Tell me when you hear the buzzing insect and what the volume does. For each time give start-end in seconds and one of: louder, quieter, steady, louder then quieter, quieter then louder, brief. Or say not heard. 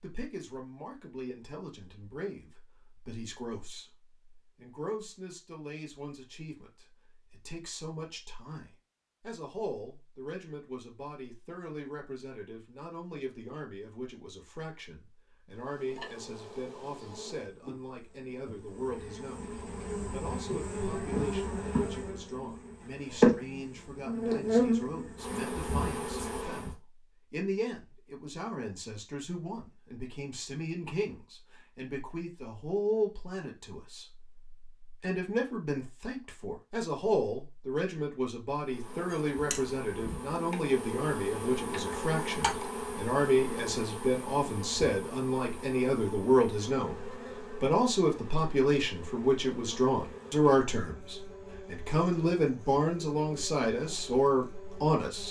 15.5-26.8 louder
38.6-55.2 quieter.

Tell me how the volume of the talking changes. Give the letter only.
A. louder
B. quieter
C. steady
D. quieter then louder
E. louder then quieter
A.